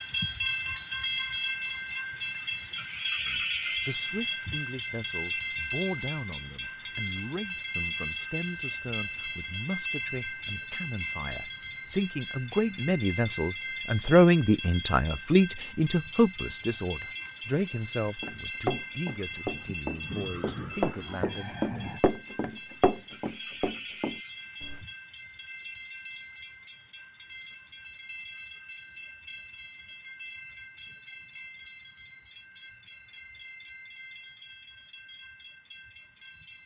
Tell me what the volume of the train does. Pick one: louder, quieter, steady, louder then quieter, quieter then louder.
quieter.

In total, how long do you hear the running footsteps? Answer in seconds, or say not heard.
7 s.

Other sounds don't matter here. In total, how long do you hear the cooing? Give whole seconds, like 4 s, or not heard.
not heard.